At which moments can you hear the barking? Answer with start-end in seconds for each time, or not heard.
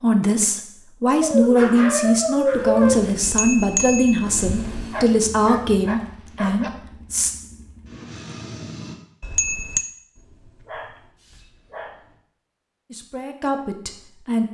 1.2-3.1, 4.9-6.7, 10.2-12.2.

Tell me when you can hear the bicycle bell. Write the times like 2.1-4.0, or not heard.
3.2-5.0, 9.2-9.8.